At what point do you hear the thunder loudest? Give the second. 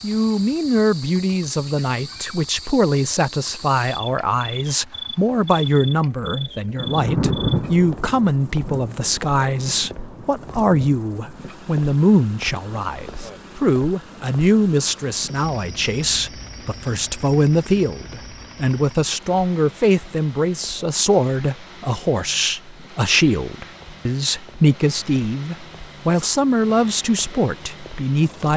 7 s.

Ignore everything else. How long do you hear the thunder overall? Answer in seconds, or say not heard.
4 s.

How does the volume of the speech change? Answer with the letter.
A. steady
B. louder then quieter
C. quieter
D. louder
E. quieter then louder
A.